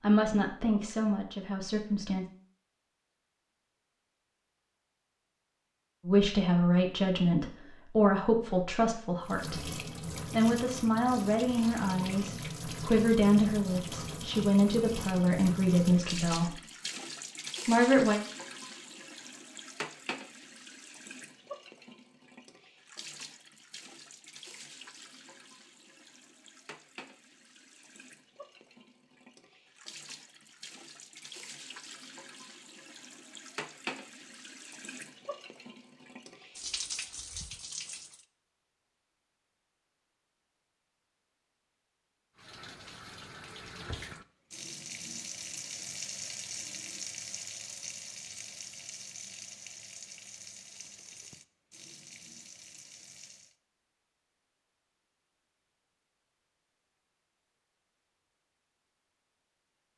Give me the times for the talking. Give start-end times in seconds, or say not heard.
0.0-2.2, 6.0-16.6, 17.6-18.2.